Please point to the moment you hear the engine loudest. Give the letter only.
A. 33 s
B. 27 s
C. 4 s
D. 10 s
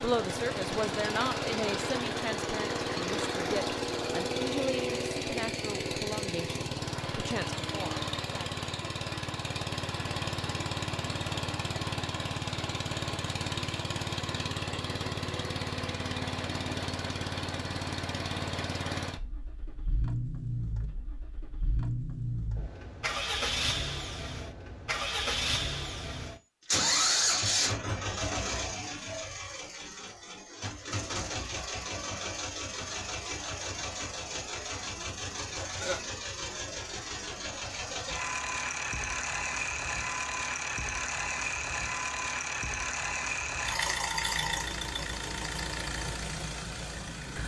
B.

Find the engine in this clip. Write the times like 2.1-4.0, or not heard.
0.0-47.4.